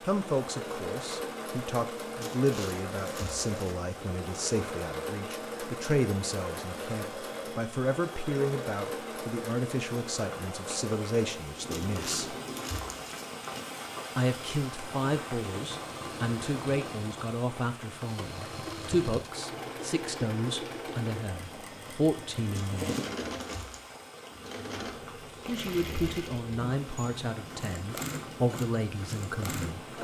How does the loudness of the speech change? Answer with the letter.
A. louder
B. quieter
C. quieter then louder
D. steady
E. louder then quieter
D.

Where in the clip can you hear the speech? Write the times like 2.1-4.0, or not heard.
0.1-12.3, 14.2-22.9, 25.4-29.7.